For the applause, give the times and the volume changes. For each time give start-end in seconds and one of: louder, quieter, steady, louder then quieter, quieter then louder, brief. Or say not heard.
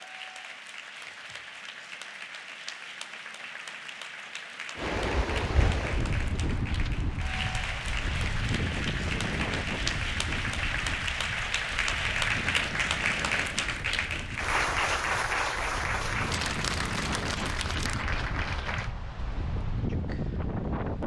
0.0-18.9 louder.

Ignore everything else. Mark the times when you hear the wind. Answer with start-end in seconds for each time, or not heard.
4.8-21.0.